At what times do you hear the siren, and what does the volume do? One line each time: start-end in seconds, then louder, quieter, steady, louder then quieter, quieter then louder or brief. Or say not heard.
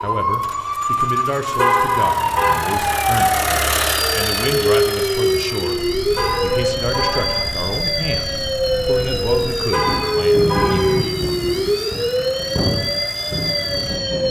0.0-14.2 steady.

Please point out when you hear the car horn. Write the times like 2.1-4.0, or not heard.
1.6-2.6, 6.2-7.5, 9.7-11.0.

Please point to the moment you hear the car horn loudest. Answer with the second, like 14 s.
2 s.